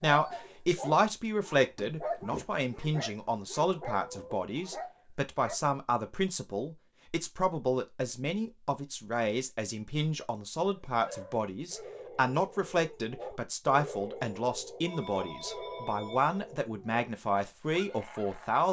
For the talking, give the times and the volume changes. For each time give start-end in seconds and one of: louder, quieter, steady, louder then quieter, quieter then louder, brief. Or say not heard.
0.0-18.6 steady.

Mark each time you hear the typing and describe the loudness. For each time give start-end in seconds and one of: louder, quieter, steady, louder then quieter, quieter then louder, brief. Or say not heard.
not heard.